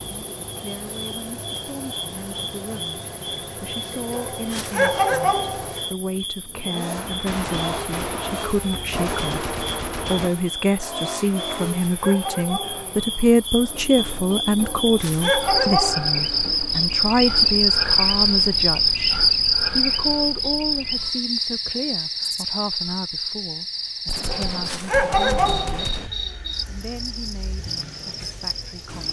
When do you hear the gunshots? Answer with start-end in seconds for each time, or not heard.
7.0-10.3, 24.1-26.1.